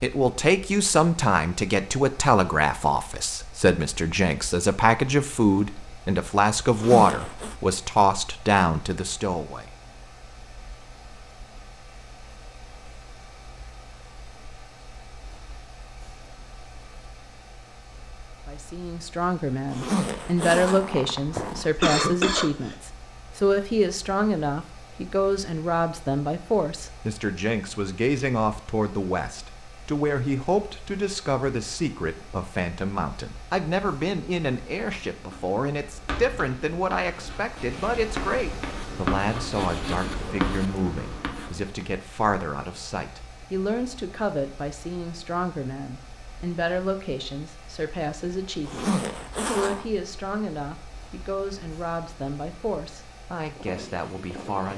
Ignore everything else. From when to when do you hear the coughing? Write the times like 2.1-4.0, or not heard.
21.4-22.8.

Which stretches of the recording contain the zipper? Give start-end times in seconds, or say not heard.
6.7-7.5, 19.7-21.6, 48.6-49.9.